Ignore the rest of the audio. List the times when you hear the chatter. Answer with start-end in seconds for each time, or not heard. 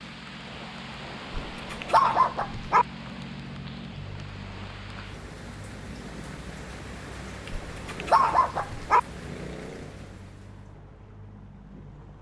not heard.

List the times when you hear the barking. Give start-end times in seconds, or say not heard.
1.5-2.9, 7.5-9.0.